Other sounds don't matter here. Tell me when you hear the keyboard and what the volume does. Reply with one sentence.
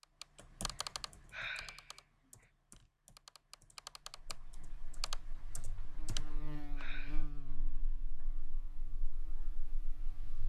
The keyboard can be heard from 0.0 to 6.8 s, getting quieter then louder.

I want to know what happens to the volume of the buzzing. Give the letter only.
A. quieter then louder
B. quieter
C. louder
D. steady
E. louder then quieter
E.